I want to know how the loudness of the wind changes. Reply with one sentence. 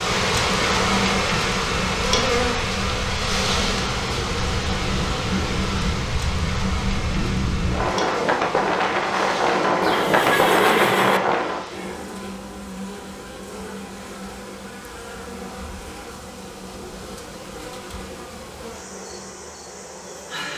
The loudness of the wind goes up.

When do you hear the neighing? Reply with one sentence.
You can hear the neighing from 9.8 to 11.2 s.